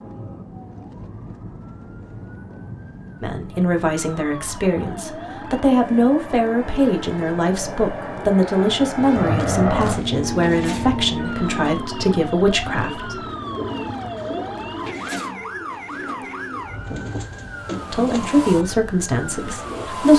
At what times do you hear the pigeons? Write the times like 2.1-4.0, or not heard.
10.2-19.9.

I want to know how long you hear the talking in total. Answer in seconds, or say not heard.
12 s.